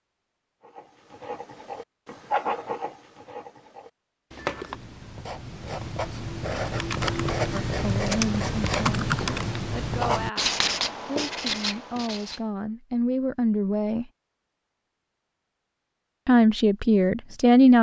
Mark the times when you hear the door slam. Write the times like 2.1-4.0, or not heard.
not heard.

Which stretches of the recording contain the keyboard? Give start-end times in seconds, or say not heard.
6.8-9.4.